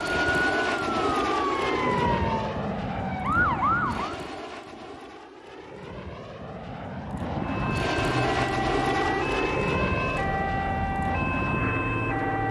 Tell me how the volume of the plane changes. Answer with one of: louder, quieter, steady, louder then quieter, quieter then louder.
quieter then louder.